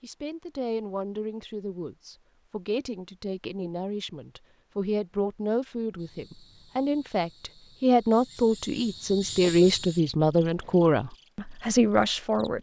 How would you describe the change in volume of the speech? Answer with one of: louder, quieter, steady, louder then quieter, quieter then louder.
louder.